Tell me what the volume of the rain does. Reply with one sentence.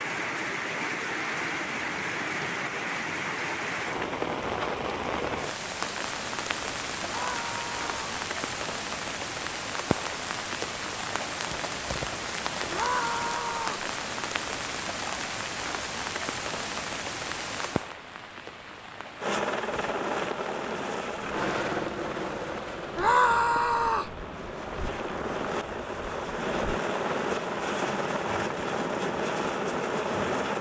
The volume of the rain goes down.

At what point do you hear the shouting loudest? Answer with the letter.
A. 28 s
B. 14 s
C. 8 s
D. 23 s
D.